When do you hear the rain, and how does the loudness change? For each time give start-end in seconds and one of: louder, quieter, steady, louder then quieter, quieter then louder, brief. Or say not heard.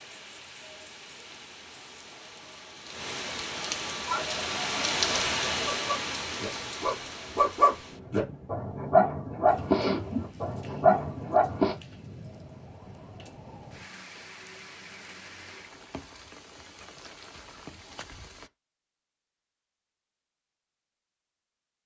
0.0-18.5 louder then quieter.